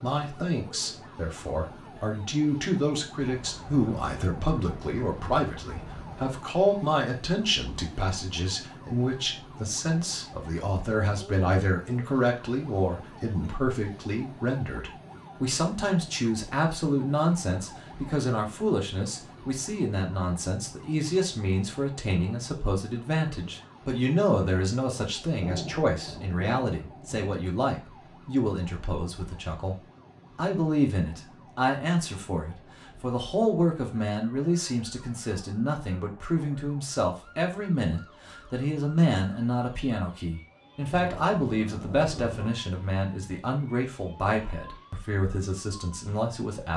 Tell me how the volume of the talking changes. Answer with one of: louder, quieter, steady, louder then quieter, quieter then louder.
steady.